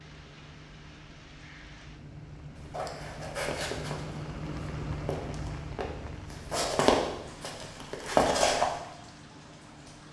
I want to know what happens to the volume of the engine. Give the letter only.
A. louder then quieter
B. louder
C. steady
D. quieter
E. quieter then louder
A.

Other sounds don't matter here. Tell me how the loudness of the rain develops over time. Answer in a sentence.
The volume of the rain goes up, then down.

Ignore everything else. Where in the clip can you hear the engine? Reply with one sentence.
You can hear the engine from 0.0 to 10.0 s.